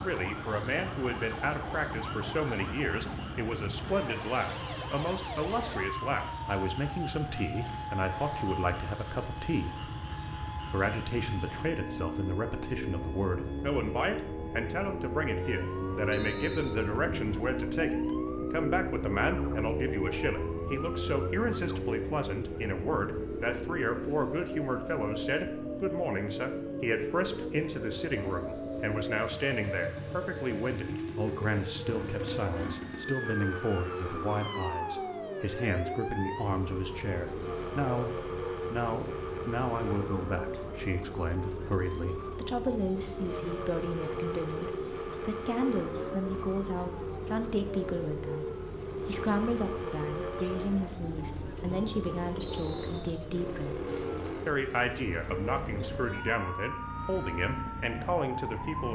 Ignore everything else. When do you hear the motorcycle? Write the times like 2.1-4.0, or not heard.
0.0-58.8.